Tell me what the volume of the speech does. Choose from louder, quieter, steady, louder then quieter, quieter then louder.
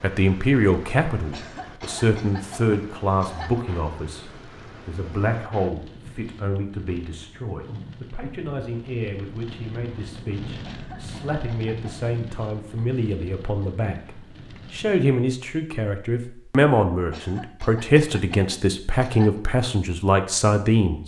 quieter then louder.